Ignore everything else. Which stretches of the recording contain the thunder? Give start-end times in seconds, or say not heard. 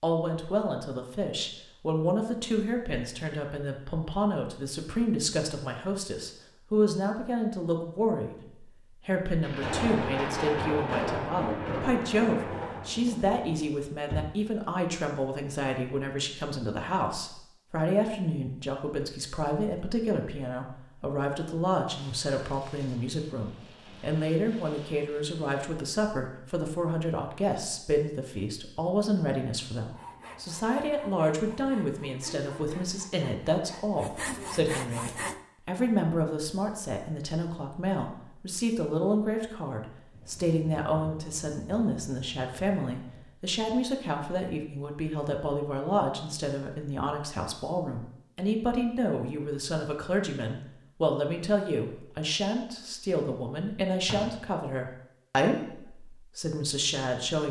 9.4-13.7, 21.9-25.6, 40.1-43.2.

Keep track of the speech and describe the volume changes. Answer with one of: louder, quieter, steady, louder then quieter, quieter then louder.
steady.